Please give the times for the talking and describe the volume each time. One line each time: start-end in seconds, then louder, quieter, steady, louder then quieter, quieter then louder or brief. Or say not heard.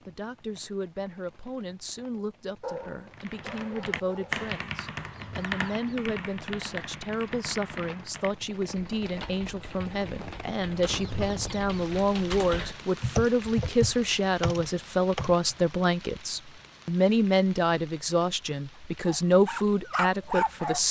0.1-20.8 louder.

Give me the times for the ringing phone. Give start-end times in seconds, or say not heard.
not heard.